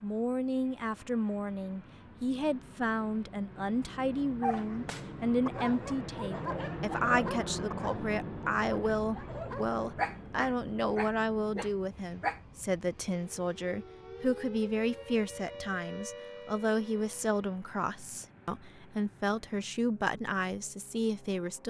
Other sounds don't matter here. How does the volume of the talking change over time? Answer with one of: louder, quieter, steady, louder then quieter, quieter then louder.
steady.